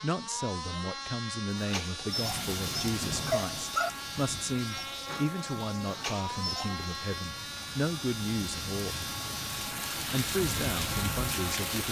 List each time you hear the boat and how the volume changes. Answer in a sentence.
You can hear the boat from 0.0 to 11.8 s, at a steady volume.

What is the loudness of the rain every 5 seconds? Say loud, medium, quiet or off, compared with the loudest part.
medium, medium, loud.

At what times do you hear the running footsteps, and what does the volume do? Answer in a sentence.
The running footsteps can't be heard in this clip.